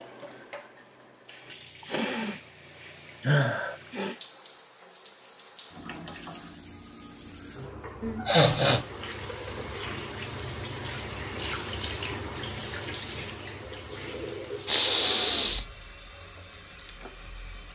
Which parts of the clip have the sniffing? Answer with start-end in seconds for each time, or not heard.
1.8-4.2, 8.0-8.8, 14.7-15.7.